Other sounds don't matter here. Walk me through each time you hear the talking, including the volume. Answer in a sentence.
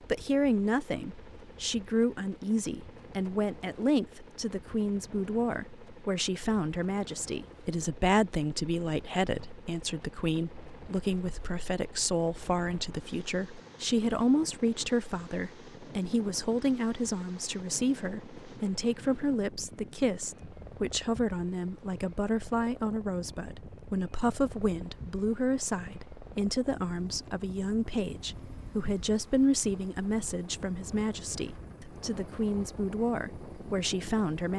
You can hear the talking from 0.1 to 34.5 s, at a steady volume.